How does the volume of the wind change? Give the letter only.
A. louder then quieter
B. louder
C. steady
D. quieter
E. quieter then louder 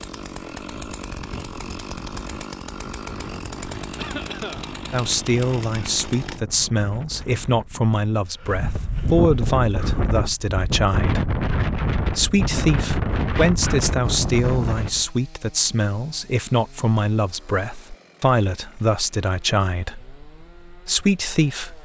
B.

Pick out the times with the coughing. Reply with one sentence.
You can hear the coughing from 4.0 to 4.7 s.